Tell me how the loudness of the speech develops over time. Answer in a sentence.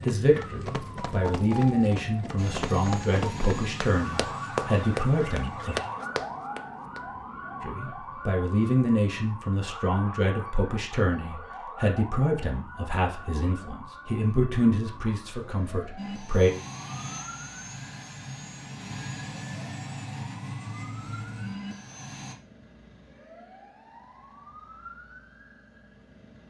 The volume of the speech stays about the same.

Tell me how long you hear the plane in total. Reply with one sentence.
You can hear the plane for 12 seconds altogether.